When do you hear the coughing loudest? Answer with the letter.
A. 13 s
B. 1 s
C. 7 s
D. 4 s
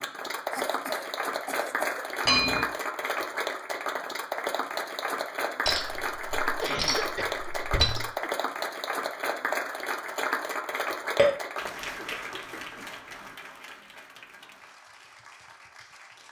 C.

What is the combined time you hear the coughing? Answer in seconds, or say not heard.
5 s.